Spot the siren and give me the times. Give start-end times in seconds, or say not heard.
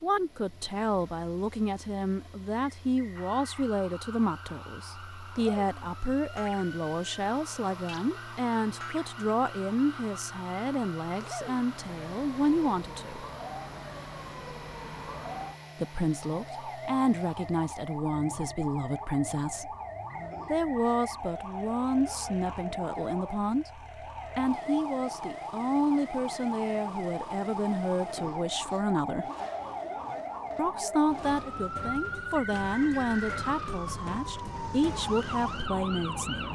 3.1-36.5.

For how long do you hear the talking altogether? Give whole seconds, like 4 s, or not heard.
32 s.